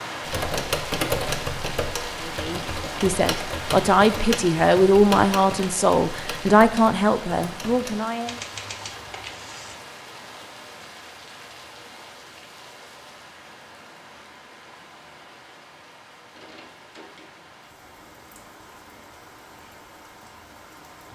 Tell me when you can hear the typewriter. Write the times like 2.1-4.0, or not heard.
0.2-9.8.